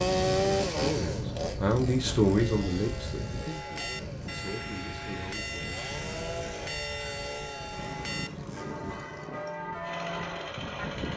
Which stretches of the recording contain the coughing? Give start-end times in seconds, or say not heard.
not heard.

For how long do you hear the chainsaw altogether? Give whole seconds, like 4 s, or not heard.
11 s.